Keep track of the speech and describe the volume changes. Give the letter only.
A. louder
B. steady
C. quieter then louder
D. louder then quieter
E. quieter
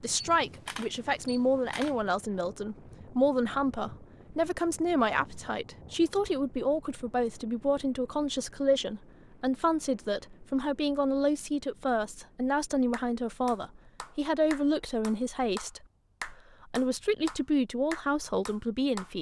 B.